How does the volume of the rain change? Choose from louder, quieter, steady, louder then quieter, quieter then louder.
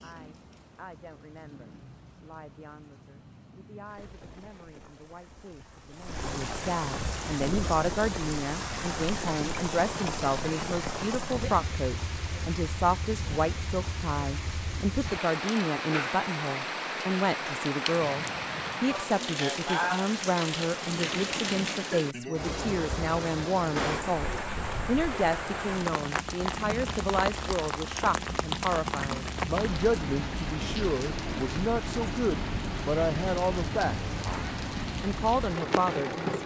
louder.